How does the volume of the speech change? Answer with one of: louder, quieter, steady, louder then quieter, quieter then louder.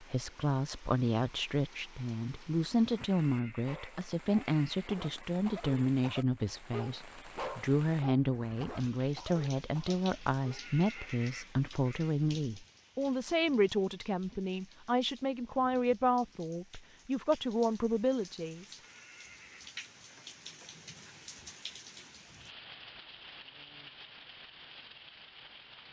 steady.